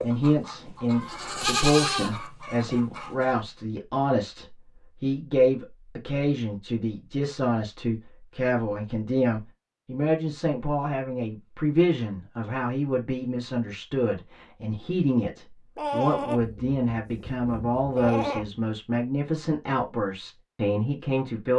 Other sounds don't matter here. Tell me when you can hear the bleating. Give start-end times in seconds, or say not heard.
1.0-2.1, 15.8-18.5.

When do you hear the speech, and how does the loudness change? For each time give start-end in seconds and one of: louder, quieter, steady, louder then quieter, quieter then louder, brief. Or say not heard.
0.0-21.5 steady.